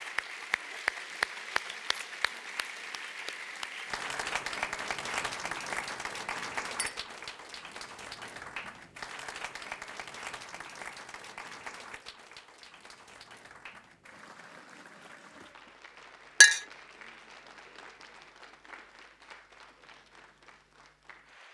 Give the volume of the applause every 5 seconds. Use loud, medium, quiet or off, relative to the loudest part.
loud, loud, medium, quiet, quiet.